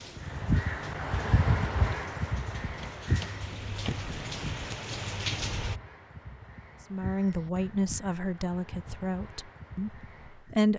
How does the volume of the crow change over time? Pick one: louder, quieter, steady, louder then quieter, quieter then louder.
quieter.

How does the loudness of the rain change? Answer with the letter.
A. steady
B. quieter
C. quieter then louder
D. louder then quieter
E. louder
E.